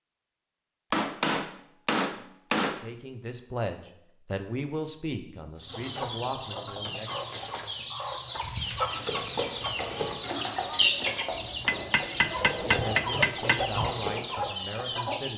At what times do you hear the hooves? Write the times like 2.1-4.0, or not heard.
8.8-14.2.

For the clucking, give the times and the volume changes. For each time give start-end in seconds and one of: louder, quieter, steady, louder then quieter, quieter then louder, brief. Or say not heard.
5.6-15.3 louder then quieter.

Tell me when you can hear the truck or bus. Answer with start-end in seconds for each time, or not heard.
not heard.